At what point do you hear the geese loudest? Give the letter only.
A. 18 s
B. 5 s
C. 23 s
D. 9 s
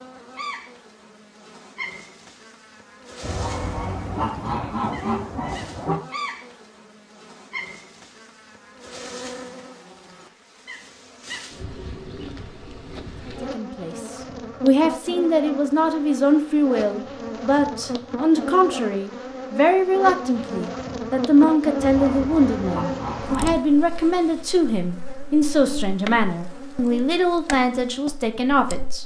B.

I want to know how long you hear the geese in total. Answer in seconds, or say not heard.
5 s.